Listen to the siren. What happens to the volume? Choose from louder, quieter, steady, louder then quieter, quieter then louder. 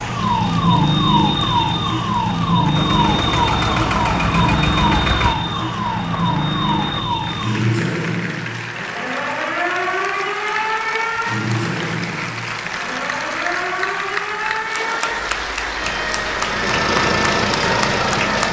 quieter.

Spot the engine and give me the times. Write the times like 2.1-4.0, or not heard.
2.8-5.3, 15.8-18.4.